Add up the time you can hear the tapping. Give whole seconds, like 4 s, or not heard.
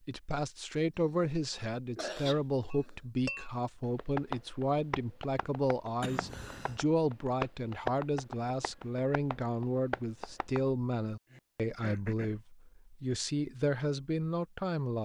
8 s.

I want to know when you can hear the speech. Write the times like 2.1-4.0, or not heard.
0.1-15.0.